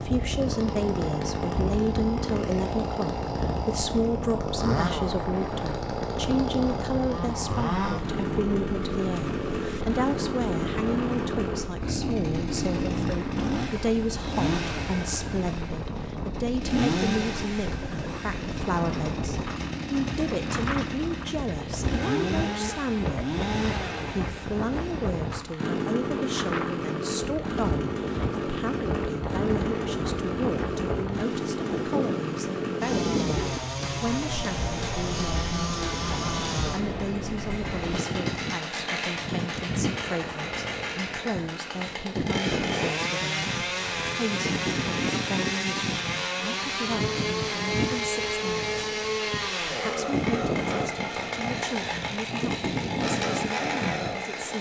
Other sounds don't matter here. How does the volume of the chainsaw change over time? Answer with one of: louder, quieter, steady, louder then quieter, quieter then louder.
steady.